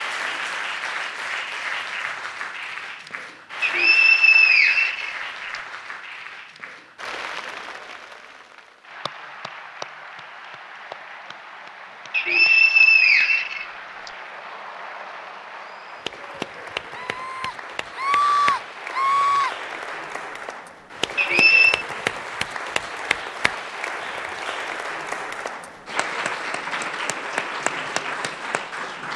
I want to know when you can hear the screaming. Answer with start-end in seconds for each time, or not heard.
16.9-19.6.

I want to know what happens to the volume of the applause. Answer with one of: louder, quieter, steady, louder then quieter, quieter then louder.
quieter then louder.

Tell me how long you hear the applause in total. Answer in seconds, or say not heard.
29 s.